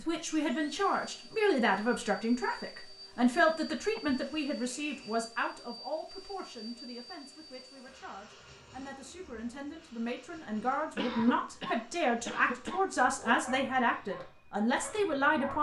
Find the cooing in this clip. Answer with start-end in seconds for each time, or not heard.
not heard.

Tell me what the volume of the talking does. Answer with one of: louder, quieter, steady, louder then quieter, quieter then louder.
quieter then louder.